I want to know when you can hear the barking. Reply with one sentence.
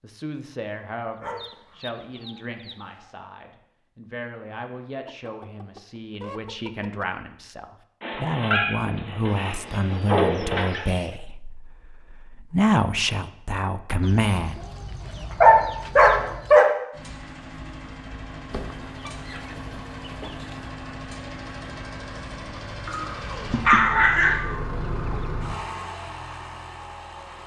The barking can be heard from 1.2 to 3.0 s, from 8.0 to 10.8 s, from 15.2 to 16.6 s and from 22.9 to 24.5 s.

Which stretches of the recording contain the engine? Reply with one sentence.
You can hear the engine from 16.9 to 27.4 s.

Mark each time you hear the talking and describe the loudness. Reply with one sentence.
You can hear the talking from 0.0 to 14.6 s, getting louder.